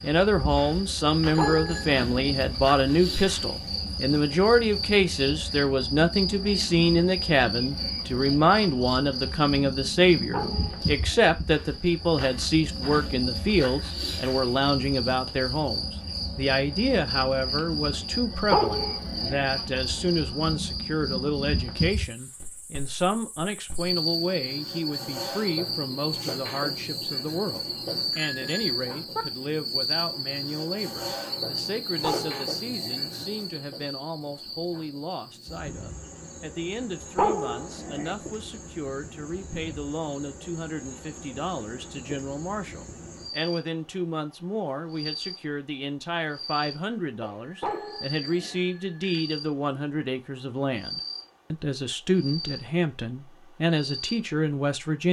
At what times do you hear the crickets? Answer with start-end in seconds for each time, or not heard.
0.0-55.0.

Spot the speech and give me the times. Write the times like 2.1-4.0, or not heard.
0.0-55.0.